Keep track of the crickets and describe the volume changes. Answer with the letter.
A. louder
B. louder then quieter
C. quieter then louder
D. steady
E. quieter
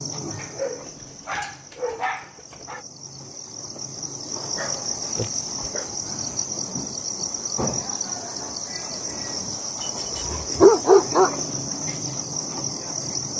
A.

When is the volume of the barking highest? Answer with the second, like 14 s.
11 s.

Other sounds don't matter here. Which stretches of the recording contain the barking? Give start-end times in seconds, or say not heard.
0.3-2.9, 4.5-6.0, 9.8-11.3.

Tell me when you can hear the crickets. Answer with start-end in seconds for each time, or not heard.
0.0-13.3.